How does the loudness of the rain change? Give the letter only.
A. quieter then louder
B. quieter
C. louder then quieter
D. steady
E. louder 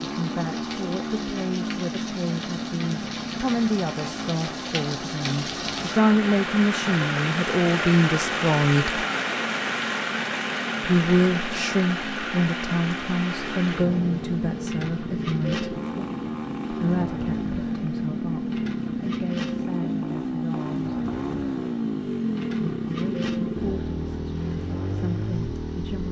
C.